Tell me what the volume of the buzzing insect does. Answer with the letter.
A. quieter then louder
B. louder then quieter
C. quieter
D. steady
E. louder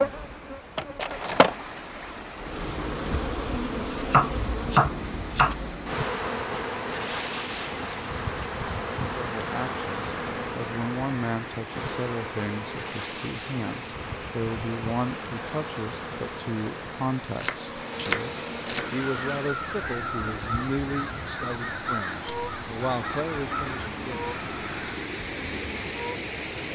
C.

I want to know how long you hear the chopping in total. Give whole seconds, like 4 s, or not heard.
3 s.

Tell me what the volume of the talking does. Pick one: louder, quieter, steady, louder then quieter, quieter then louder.
steady.